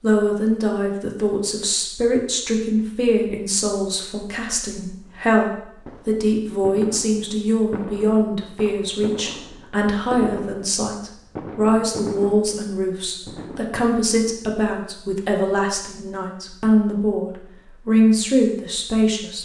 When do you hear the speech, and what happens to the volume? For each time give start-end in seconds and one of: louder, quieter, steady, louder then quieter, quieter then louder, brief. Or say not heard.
0.0-19.4 steady.